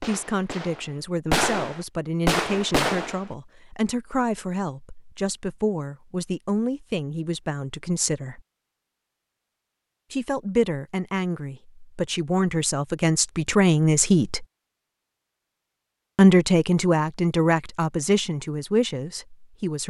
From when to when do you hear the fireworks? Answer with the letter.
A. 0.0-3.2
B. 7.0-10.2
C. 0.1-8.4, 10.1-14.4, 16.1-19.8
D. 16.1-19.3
A.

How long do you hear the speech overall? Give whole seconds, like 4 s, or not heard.
16 s.